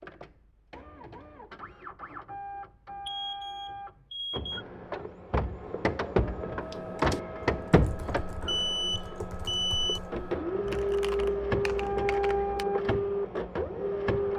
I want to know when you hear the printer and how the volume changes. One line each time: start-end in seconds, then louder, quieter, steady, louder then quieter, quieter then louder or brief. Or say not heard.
0.0-14.3 louder.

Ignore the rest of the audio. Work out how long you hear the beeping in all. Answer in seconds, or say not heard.
3 s.